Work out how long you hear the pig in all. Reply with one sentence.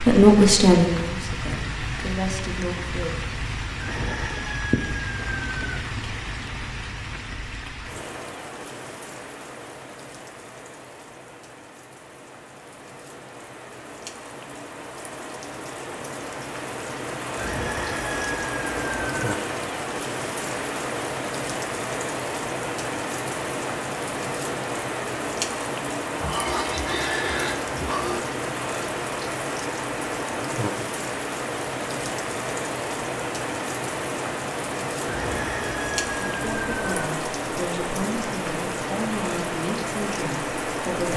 The pig can be heard for 2 seconds in total.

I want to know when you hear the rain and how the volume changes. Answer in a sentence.
The rain can be heard from 0.0 to 41.1 s, getting quieter then louder.